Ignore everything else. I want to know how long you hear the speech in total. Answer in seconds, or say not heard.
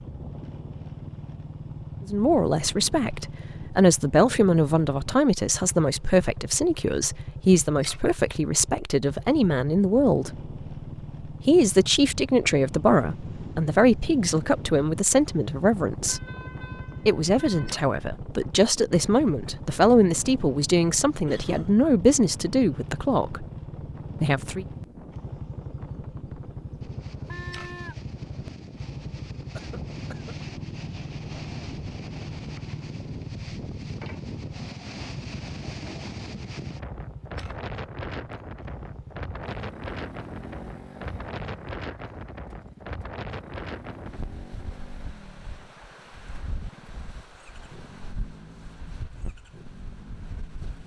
20 s.